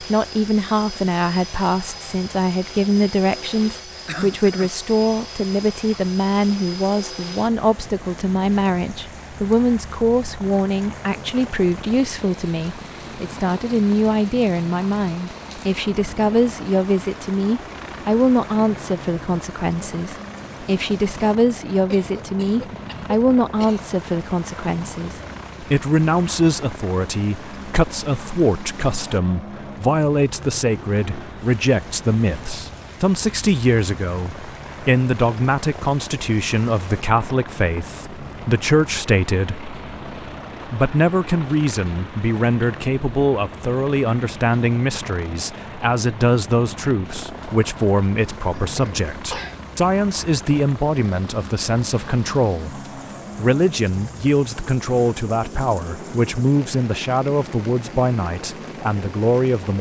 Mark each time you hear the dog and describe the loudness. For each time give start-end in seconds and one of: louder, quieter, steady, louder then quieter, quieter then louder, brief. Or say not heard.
not heard.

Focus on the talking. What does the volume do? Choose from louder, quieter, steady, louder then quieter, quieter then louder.
steady.